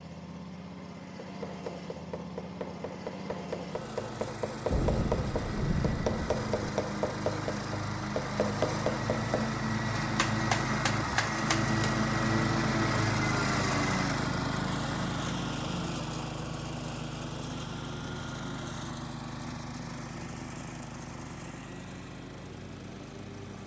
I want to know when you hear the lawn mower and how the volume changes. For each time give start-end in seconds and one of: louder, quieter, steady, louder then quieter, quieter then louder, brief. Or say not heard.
0.0-23.6 louder then quieter.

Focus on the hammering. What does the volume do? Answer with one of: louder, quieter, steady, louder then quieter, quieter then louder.
louder.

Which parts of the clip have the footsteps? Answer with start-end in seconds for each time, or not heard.
not heard.